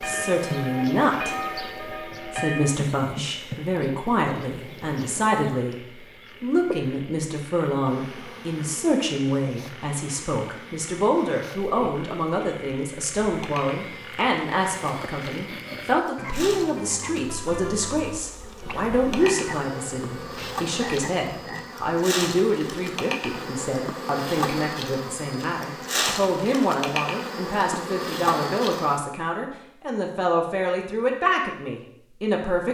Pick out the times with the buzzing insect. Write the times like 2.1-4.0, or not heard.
0.0-29.0.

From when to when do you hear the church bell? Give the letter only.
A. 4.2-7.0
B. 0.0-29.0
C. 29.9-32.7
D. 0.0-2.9
D.